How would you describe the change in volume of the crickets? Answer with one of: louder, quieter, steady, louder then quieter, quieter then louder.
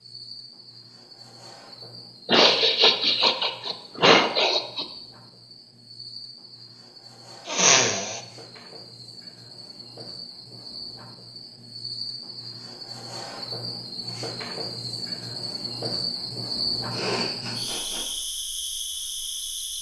louder.